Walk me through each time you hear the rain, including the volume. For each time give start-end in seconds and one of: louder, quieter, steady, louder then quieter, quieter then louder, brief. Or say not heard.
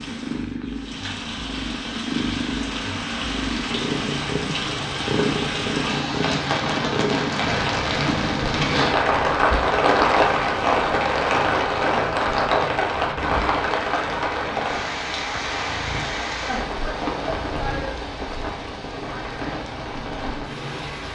0.0-21.0 louder then quieter.